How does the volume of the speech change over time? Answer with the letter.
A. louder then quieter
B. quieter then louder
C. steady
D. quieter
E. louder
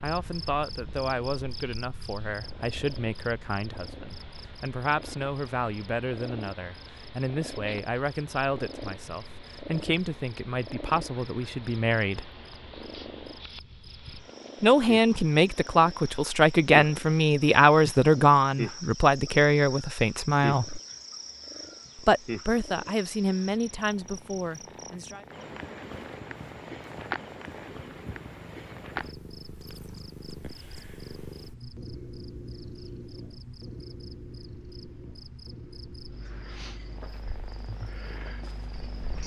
A.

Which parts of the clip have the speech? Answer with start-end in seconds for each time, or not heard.
0.0-12.3, 14.6-20.8, 21.9-25.2.